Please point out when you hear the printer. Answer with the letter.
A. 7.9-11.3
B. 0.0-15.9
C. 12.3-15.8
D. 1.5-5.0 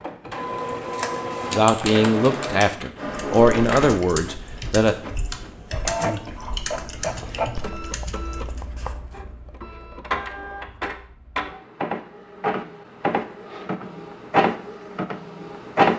B.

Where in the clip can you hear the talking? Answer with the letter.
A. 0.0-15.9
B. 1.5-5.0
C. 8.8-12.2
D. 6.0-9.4
B.